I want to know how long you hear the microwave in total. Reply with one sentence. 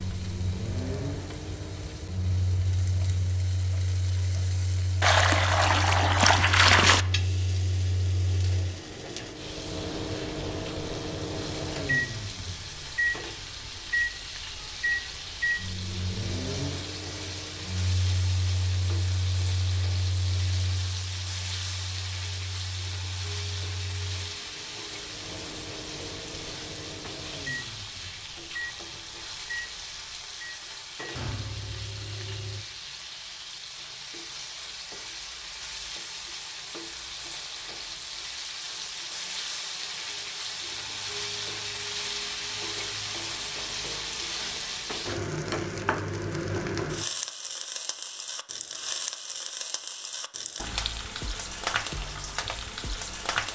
You can hear the microwave for 33 seconds altogether.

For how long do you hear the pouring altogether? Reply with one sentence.
The pouring can be heard for 2 seconds in total.